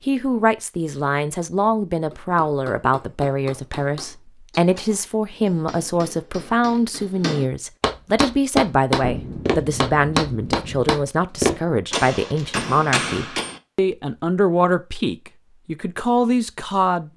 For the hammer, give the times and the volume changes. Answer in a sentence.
You can hear the hammer from 2.1 to 13.6 s, getting louder.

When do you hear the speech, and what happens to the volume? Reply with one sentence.
You can hear the speech from 0.1 to 17.1 s, at a steady volume.